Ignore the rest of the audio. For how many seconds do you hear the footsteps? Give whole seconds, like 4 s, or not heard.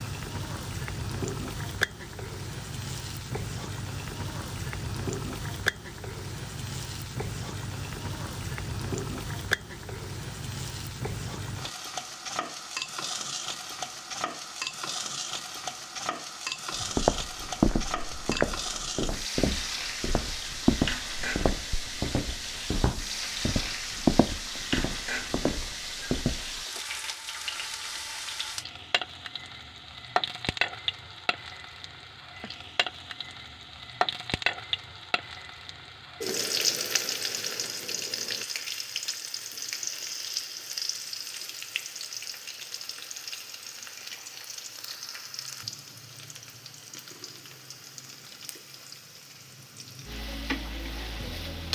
10 s.